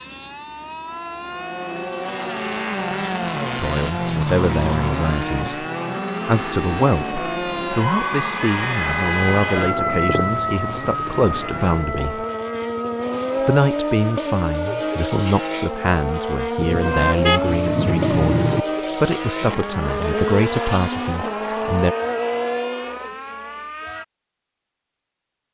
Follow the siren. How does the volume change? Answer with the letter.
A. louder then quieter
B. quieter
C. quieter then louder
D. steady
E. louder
A.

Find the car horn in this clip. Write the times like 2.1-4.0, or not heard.
16.6-18.6.